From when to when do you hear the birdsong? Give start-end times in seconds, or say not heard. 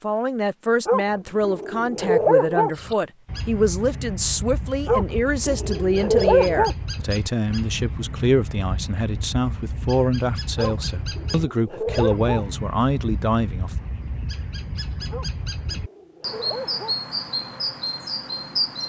2.8-18.8.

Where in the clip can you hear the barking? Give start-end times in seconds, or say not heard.
0.8-2.7, 4.8-6.8, 10.6-12.4, 15.1-16.9.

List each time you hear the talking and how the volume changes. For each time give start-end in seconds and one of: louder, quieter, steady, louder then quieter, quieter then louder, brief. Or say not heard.
0.0-13.8 steady.